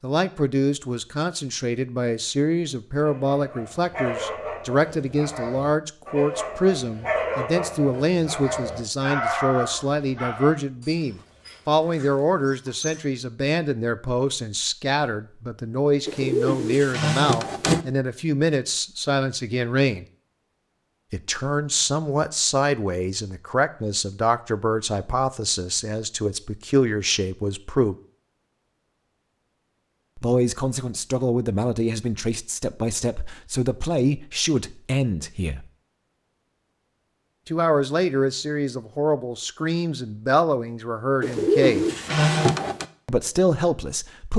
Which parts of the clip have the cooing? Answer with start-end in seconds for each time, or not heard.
16.1-17.9, 41.2-42.9.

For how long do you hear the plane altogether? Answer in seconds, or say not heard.
not heard.